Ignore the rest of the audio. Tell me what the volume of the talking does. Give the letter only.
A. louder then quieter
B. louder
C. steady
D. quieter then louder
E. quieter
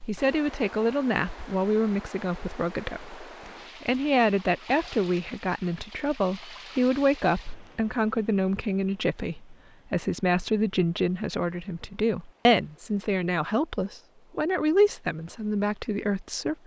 C.